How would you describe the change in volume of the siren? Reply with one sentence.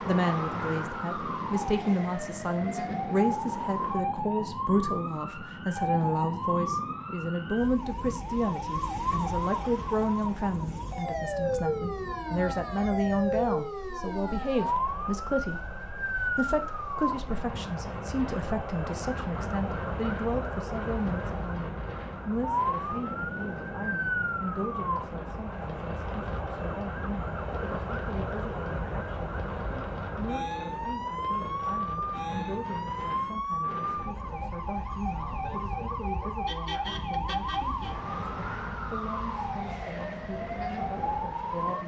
The loudness of the siren stays about the same.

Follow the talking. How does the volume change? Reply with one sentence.
The loudness of the talking goes down.